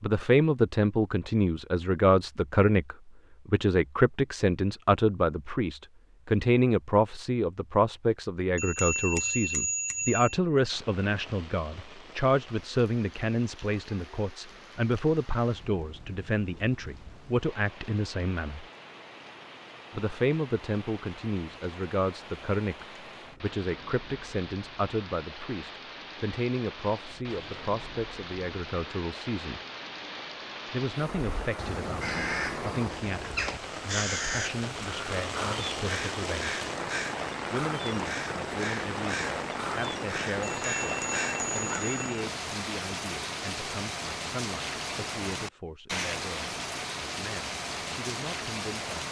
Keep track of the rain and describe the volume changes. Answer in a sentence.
The loudness of the rain goes up.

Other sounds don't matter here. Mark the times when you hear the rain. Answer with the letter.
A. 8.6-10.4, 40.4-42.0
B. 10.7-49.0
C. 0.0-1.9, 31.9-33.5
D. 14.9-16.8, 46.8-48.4
B.